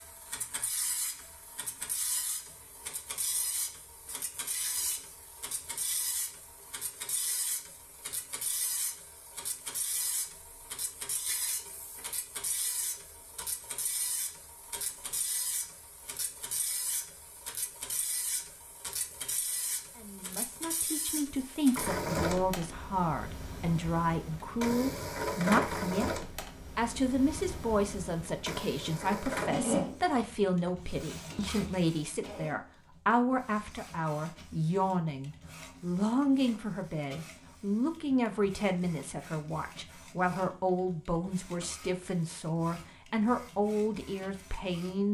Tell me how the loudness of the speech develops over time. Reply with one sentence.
The loudness of the speech stays about the same.